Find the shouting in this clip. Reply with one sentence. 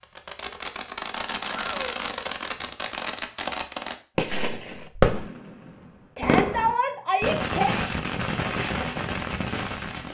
The shouting can be heard from 1.4 to 1.9 s and from 6.2 to 7.8 s.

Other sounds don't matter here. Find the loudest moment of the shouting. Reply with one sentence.
The loudest moment of the shouting is at 7 seconds.